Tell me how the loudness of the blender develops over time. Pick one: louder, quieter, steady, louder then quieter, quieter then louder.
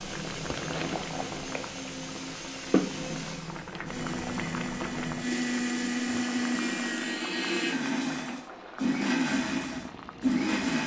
louder.